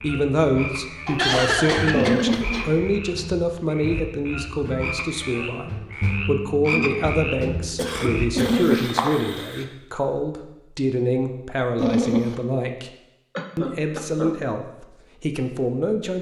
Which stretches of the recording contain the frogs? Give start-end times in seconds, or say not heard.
0.0-9.7.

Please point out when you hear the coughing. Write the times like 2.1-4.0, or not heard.
1.1-2.8, 7.8-8.6, 13.3-14.3.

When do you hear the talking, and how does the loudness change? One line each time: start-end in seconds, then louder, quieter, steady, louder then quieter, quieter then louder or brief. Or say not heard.
0.0-12.9 steady
13.6-16.1 brief.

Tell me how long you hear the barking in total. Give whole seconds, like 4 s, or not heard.
2 s.